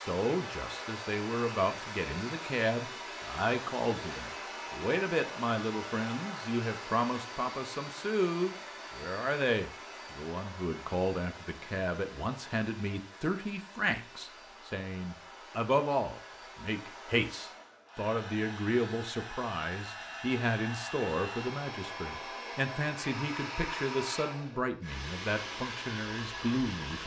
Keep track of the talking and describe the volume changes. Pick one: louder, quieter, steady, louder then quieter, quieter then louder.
steady.